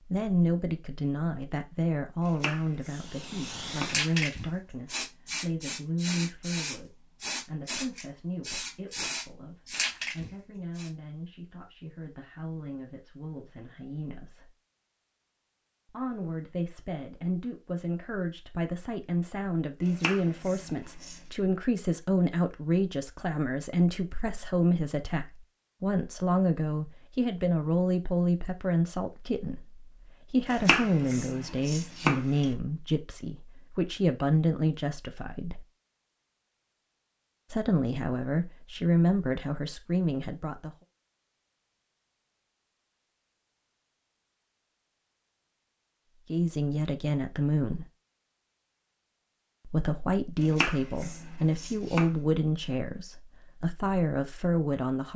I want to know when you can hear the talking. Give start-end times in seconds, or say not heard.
0.1-14.5, 15.9-35.6, 37.5-40.7, 46.2-47.9, 49.6-55.1.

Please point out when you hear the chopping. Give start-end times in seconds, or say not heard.
2.2-4.0, 19.8-21.2, 30.4-32.5, 50.4-52.1.